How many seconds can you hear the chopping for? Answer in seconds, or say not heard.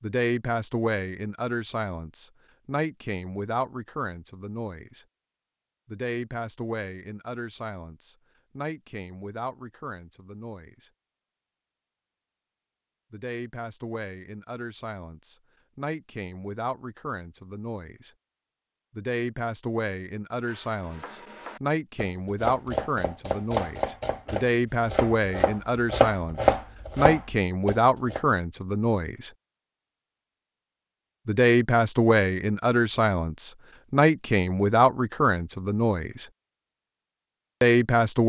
8 s.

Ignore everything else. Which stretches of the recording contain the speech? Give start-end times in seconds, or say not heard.
0.0-5.0, 5.8-10.9, 13.1-18.1, 18.9-29.3, 31.2-36.2, 37.6-38.2.